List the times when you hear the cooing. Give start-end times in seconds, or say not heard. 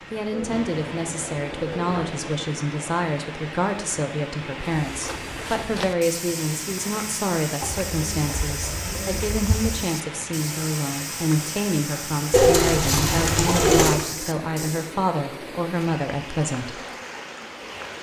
0.3-2.3, 7.6-9.8, 12.3-14.1.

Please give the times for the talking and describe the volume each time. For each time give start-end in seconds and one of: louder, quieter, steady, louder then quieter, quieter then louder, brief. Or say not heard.
0.1-16.8 steady.